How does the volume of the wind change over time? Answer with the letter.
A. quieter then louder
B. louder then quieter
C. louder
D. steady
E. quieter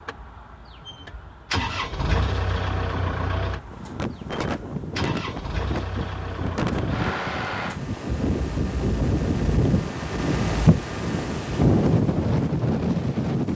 C.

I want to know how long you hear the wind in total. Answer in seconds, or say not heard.
10 s.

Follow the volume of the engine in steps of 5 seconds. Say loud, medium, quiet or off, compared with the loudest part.
loud, loud, off.